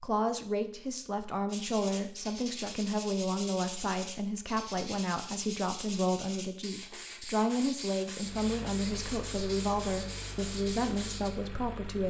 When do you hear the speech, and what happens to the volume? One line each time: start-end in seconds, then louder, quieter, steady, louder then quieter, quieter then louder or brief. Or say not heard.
0.0-12.0 steady.